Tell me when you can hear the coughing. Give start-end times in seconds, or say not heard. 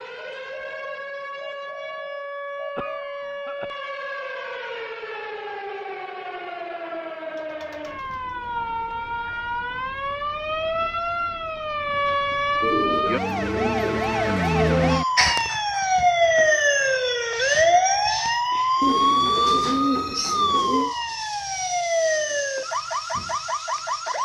2.8-3.8.